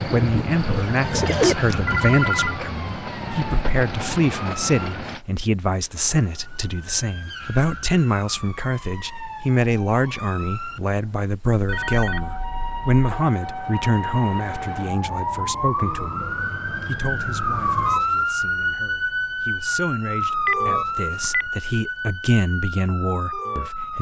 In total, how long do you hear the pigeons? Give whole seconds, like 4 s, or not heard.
2 s.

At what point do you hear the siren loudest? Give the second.
18 s.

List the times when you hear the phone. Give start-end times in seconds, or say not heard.
1.9-2.6, 11.7-13.3, 20.2-21.5.